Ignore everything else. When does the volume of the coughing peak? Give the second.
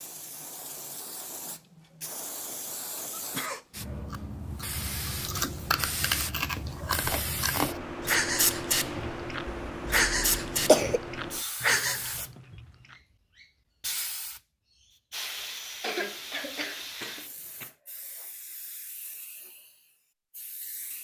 11 s.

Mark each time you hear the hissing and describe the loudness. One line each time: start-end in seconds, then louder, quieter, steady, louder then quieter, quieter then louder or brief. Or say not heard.
0.0-20.9 louder then quieter.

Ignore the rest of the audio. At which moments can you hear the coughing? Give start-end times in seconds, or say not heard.
3.1-3.6, 9.4-11.0, 15.8-17.7.